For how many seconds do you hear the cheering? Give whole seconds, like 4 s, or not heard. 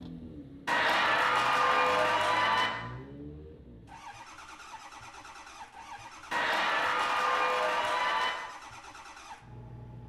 4 s.